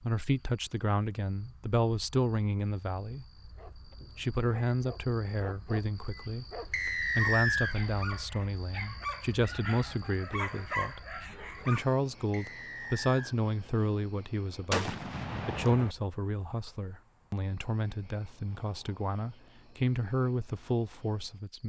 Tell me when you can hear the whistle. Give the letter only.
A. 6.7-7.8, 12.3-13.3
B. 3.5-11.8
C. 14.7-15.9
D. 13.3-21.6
A.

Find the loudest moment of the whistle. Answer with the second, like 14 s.
7 s.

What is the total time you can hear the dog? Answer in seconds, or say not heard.
8 s.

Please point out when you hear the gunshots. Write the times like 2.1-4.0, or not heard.
14.7-15.9.